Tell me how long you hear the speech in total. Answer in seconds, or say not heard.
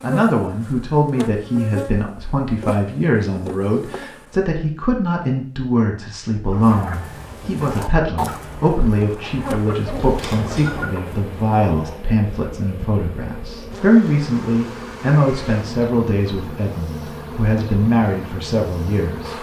19 s.